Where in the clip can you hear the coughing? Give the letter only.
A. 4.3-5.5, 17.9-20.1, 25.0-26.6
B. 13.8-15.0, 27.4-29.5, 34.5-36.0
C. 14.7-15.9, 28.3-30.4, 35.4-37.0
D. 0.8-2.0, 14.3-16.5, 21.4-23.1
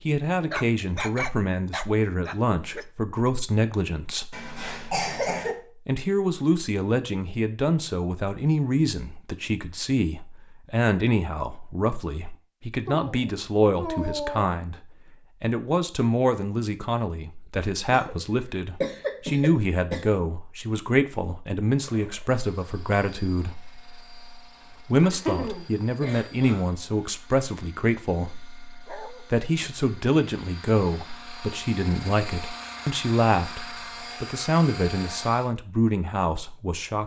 A.